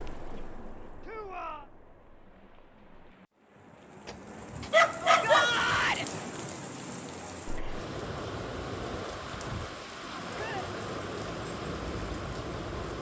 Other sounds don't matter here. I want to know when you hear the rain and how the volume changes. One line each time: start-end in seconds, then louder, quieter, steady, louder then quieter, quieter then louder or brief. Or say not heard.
0.0-12.9 louder.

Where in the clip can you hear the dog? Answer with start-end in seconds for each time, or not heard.
4.0-5.6.